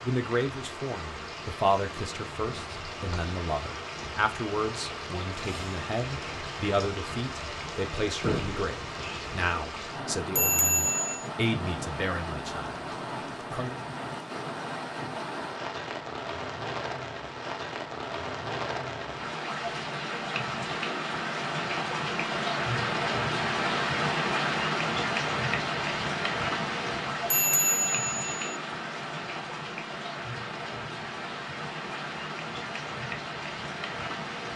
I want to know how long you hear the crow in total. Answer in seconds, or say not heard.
not heard.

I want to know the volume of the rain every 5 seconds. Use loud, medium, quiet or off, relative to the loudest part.
medium, medium, medium, medium, loud, loud, medium.